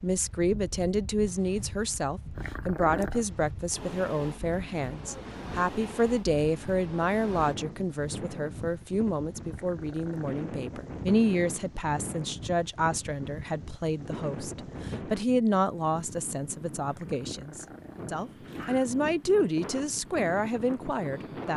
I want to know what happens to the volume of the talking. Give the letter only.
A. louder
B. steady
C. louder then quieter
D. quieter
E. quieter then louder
B.